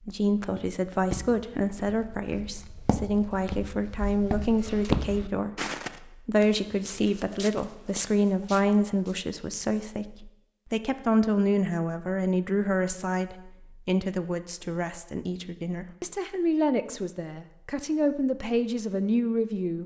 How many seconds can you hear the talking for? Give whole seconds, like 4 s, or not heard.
20 s.